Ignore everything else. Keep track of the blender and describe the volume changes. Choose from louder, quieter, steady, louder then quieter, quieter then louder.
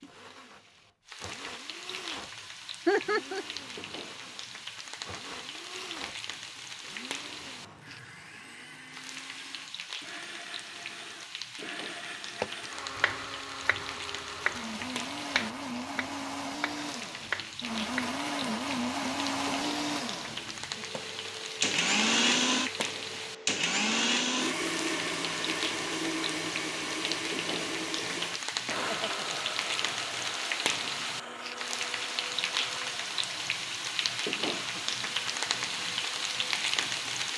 louder then quieter.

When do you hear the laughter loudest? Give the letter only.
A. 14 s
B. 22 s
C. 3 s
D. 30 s
C.